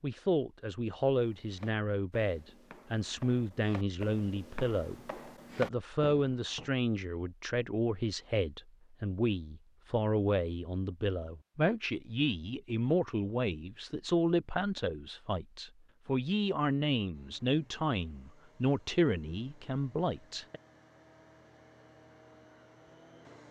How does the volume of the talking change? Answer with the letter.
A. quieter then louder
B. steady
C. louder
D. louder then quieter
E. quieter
B.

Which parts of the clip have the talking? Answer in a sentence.
You can hear the talking from 0.0 to 20.6 s.